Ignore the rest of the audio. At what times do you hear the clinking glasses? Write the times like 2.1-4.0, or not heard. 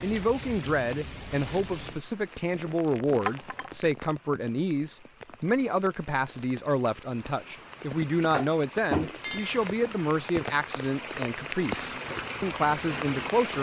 3.2-3.7, 9.2-9.6.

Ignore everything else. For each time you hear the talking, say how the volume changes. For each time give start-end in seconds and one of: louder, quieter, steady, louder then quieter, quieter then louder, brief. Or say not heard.
0.0-13.5 steady.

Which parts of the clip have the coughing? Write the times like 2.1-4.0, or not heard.
not heard.